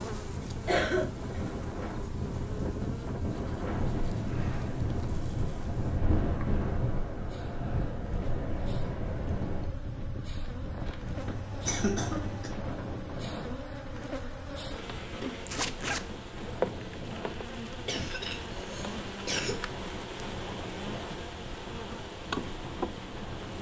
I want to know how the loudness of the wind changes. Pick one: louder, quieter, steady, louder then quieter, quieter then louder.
quieter.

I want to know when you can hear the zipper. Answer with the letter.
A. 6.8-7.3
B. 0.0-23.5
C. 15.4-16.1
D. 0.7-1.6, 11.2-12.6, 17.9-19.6
C.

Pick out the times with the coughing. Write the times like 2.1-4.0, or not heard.
0.7-1.6, 11.2-12.6, 17.9-19.6.